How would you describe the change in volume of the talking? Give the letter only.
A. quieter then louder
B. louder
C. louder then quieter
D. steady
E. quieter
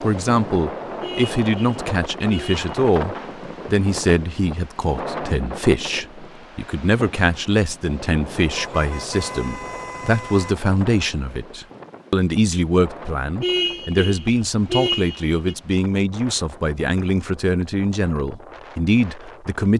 D.